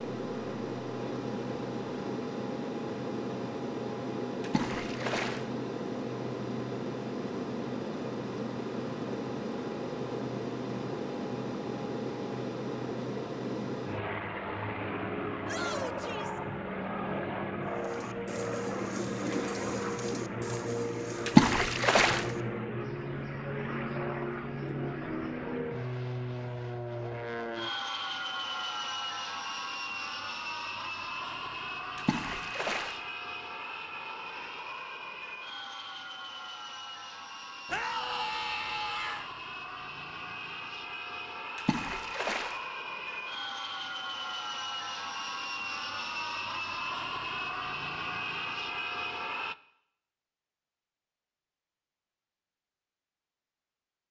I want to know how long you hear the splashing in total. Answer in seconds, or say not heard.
4 s.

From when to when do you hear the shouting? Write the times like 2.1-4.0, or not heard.
15.4-16.4, 37.7-39.3.